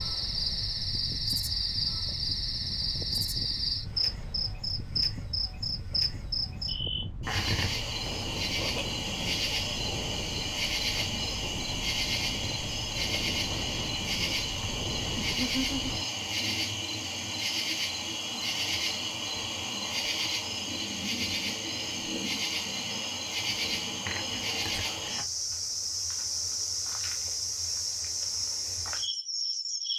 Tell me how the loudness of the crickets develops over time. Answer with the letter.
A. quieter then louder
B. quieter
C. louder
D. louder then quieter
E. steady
E.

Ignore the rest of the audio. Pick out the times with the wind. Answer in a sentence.
The wind can be heard from 0.0 to 16.1 s.